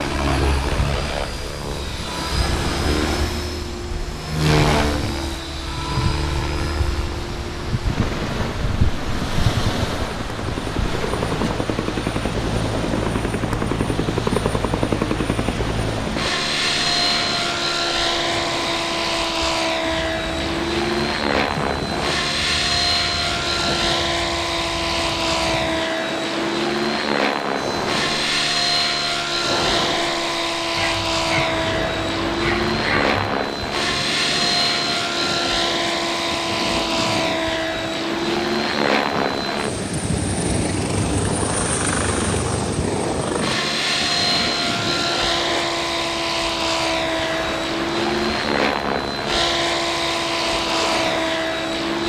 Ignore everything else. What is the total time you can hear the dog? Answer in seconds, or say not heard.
3 s.